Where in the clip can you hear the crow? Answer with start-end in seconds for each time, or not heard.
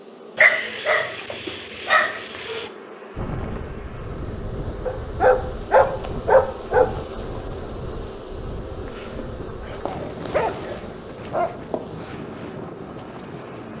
not heard.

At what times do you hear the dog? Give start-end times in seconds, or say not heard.
0.3-2.7, 4.8-7.0, 9.6-11.6.